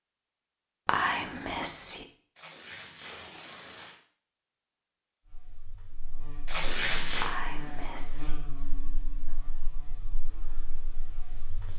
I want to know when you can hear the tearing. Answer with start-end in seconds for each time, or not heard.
2.4-4.0, 6.5-7.4.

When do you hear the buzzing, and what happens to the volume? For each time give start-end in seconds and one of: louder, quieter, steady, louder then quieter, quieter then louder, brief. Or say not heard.
5.2-11.7 louder then quieter.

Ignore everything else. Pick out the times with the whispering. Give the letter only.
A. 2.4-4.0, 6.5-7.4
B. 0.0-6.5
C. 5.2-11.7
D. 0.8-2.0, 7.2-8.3
D.